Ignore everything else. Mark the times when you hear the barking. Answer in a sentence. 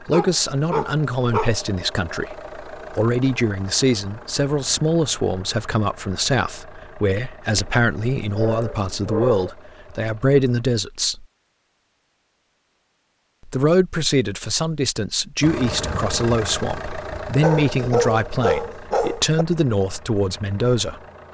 You can hear the barking from 0.1 to 1.6 s, from 7.5 to 9.5 s and from 17.4 to 19.4 s.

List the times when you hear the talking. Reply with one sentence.
The talking can be heard from 0.1 to 11.2 s and from 13.4 to 21.0 s.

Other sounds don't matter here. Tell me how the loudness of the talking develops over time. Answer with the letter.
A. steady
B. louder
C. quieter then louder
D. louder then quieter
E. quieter
A.